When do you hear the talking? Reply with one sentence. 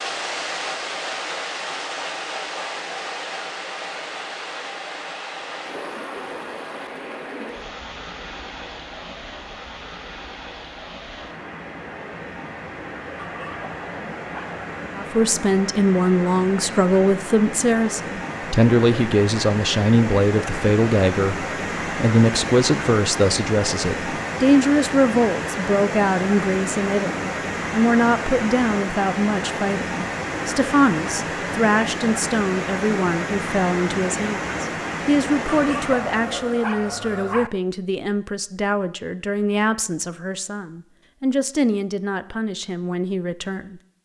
The talking can be heard from 14.9 to 43.8 s.